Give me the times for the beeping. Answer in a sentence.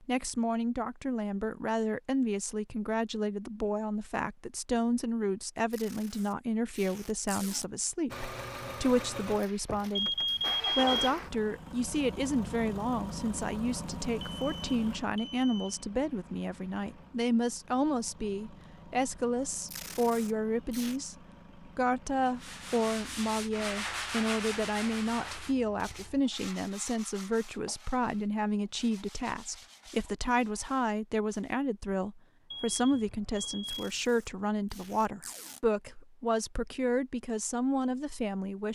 You can hear the beeping from 9.9 to 11.1 s, from 14.2 to 15.8 s and from 32.5 to 34.0 s.